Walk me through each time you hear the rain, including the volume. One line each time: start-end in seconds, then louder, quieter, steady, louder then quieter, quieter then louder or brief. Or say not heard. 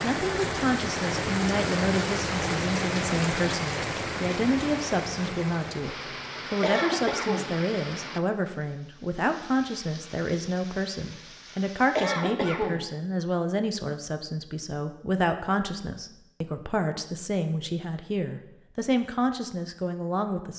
0.0-12.1 quieter.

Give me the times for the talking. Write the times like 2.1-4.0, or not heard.
0.0-20.5.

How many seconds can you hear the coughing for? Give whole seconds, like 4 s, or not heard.
2 s.